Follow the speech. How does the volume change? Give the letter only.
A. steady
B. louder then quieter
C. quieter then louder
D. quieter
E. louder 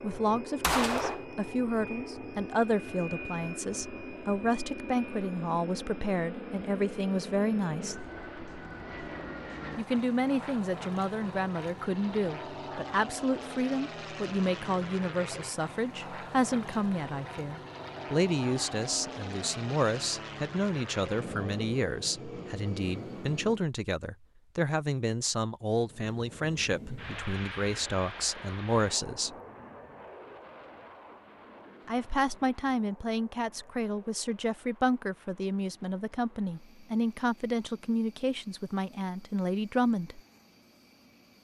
A.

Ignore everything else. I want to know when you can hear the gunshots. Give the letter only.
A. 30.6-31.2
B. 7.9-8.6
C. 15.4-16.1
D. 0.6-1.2
D.